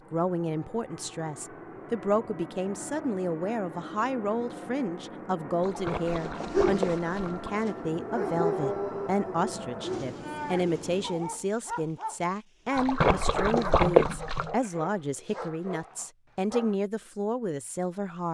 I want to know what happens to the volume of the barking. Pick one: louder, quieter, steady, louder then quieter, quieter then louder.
quieter.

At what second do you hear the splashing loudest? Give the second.
14 s.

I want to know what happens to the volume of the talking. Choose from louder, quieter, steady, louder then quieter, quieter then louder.
steady.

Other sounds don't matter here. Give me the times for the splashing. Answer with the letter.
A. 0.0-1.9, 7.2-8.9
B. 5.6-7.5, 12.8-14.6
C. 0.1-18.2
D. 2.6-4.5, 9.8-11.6
B.